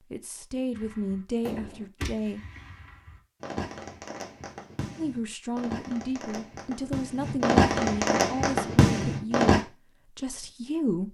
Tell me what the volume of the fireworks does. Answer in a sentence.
The volume of the fireworks goes up.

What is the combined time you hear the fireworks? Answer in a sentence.
The fireworks can be heard for 9 seconds in total.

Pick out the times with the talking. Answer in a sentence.
The talking can be heard from 0.1 to 2.4 s and from 5.0 to 11.0 s.